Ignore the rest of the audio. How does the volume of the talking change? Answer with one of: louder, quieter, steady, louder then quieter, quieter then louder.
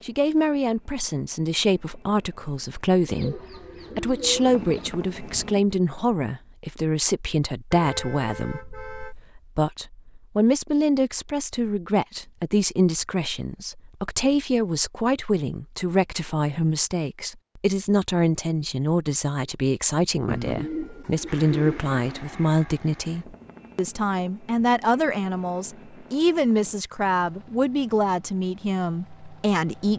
steady.